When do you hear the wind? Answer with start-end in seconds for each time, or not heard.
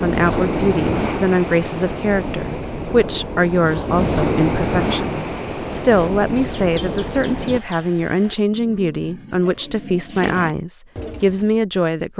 0.0-7.6.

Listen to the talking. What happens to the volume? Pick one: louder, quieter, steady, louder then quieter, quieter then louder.
steady.